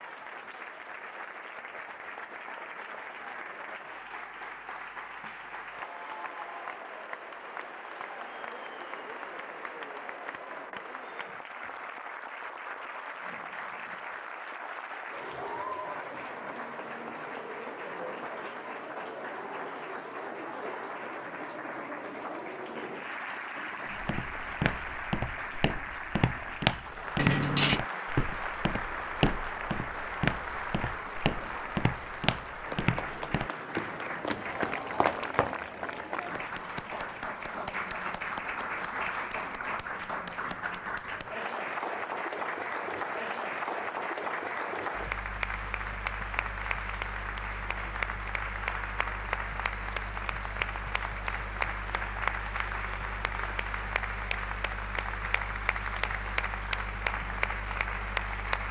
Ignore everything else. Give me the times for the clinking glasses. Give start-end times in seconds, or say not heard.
27.1-27.8.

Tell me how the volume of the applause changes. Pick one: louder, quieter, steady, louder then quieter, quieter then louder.
louder.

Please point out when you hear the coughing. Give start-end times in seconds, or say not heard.
not heard.